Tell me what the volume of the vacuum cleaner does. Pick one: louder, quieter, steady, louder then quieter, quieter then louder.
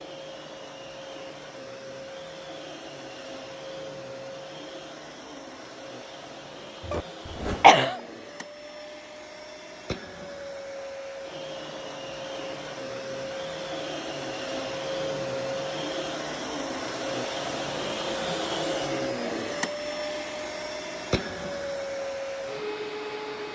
louder.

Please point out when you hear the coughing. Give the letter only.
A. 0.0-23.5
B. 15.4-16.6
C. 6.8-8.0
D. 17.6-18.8
C.